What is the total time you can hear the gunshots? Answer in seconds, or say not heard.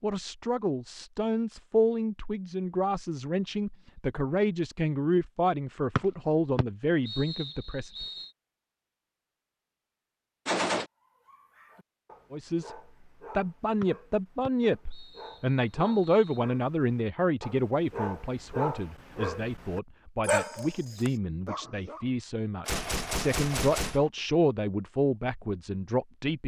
2 s.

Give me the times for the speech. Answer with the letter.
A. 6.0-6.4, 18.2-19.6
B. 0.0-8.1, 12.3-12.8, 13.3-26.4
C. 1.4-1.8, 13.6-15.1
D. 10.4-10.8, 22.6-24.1
B.